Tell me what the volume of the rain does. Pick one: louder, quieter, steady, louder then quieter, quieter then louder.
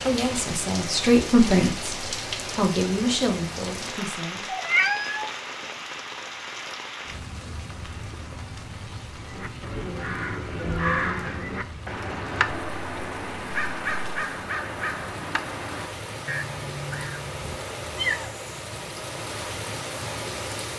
quieter then louder.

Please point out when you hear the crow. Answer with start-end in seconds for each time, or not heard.
9.2-17.5.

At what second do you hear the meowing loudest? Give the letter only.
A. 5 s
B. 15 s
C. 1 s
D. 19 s
A.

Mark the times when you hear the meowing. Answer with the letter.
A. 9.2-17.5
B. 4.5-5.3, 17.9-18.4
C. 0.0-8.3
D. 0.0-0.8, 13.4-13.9
B.